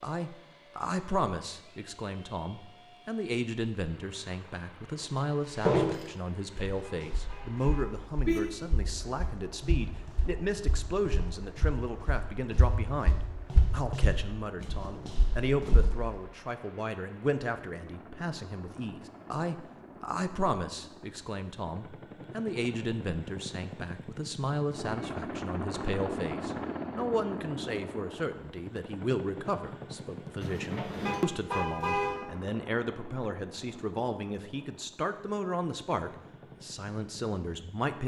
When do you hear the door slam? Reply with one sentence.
The door slam can be heard from 30.4 to 31.2 s.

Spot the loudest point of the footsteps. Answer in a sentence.
The volume of the footsteps peaks at 6 seconds.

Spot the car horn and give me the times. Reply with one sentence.
The car horn can be heard from 6.8 to 8.4 s and from 31.1 to 32.1 s.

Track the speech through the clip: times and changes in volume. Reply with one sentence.
The speech can be heard from 0.0 to 38.0 s, at a steady volume.